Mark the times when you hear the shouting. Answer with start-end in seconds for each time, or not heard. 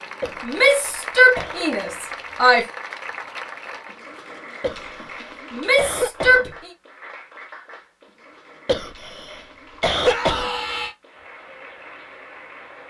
0.4-2.6, 5.5-6.7, 10.0-10.9.